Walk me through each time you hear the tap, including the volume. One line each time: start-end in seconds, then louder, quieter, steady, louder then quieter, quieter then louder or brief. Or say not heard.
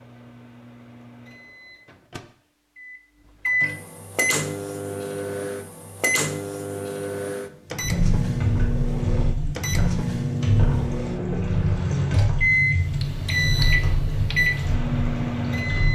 7.8-15.9 steady.